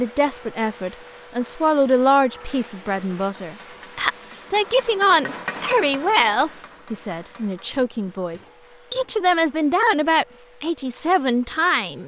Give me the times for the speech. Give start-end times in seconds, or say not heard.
0.0-12.0.